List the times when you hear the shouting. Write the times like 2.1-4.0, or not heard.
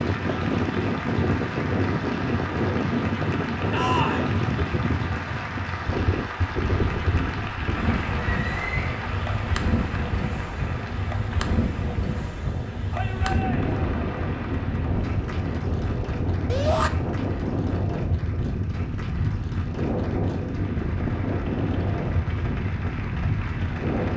3.7-4.3, 12.9-13.8, 16.4-16.9.